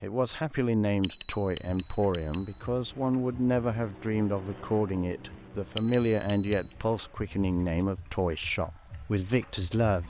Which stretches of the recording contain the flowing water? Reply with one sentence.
The flowing water can't be heard in this clip.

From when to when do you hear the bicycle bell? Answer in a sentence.
The bicycle bell can be heard from 1.0 to 2.6 s and from 5.8 to 6.7 s.